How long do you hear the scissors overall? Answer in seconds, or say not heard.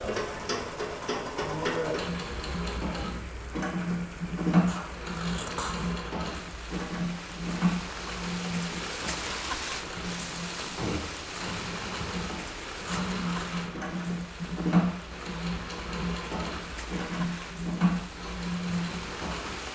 2 s.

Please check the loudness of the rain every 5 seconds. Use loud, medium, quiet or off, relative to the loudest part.
medium, loud, loud, loud.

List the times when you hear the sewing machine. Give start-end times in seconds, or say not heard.
0.0-19.7.